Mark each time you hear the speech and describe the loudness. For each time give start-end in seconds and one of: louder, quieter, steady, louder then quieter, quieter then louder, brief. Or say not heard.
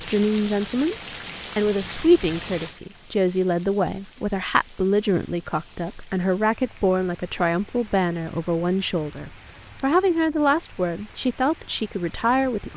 0.0-0.9 brief
1.6-12.7 steady.